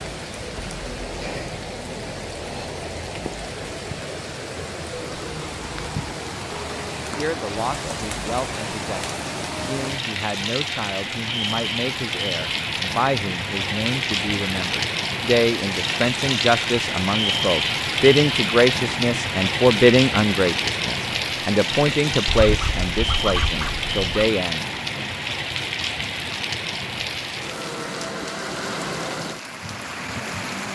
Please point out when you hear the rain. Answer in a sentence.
You can hear the rain from 0.0 to 30.7 s.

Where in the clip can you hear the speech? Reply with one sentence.
You can hear the speech from 7.0 to 25.1 s.